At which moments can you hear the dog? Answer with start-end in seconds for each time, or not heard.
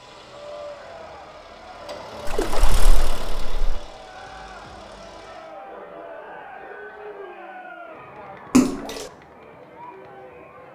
5.7-7.3.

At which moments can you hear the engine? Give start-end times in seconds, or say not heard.
0.0-5.5.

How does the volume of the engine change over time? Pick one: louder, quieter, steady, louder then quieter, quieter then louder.
louder then quieter.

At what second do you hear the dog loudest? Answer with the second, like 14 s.
6 s.